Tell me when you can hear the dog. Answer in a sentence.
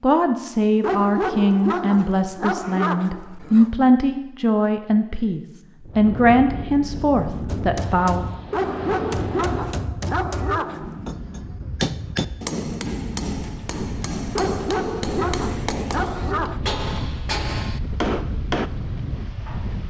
The dog can be heard from 0.8 to 3.8 s, from 8.5 to 11.1 s and from 14.3 to 16.6 s.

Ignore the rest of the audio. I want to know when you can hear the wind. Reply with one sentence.
You can hear the wind from 5.8 to 19.8 s.